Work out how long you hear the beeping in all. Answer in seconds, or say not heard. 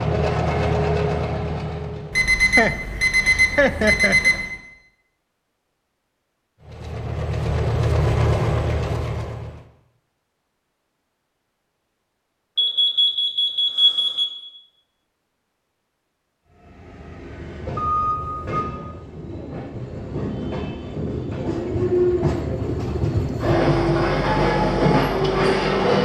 5 s.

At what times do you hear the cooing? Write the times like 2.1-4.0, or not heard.
not heard.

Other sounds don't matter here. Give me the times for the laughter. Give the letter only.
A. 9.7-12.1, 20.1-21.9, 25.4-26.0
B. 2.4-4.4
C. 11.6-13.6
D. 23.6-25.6
B.